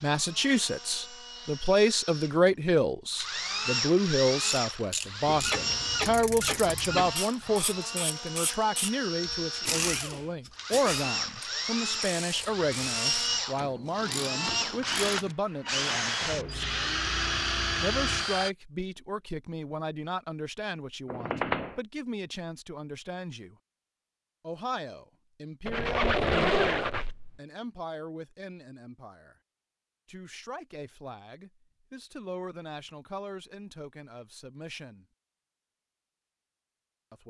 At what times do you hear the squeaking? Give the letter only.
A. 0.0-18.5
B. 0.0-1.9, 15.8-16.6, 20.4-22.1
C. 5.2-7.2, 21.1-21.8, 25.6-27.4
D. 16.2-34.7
C.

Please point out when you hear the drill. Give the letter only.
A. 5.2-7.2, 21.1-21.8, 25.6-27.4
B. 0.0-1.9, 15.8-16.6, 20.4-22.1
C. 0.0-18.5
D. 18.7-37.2
C.